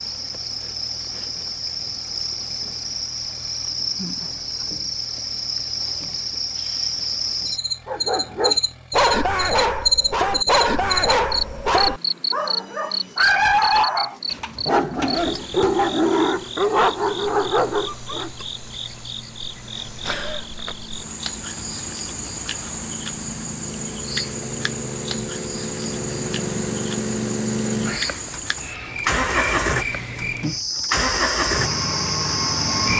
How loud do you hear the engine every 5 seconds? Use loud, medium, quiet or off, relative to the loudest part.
quiet, quiet, quiet, quiet, medium, loud, loud.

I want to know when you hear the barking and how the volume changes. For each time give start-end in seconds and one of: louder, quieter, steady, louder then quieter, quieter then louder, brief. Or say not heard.
7.8-18.3 steady.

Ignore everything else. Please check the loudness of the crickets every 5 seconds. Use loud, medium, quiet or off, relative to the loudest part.
medium, loud, loud, medium, medium, medium, loud.